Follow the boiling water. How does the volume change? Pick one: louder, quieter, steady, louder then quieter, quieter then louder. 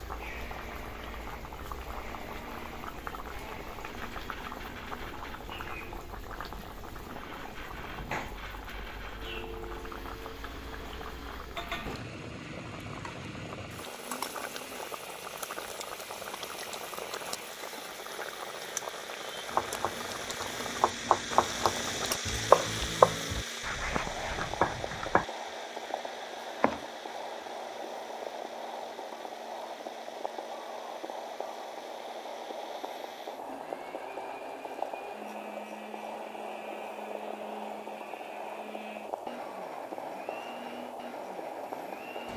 steady.